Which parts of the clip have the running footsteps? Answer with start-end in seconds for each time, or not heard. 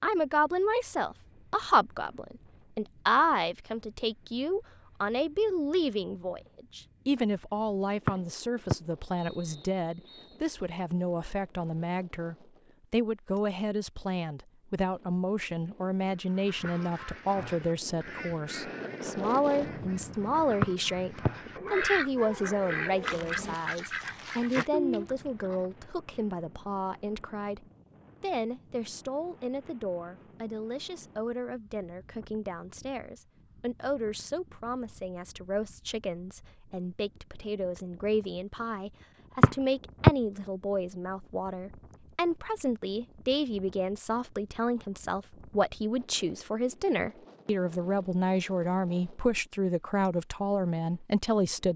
not heard.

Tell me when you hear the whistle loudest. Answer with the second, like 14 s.
40 s.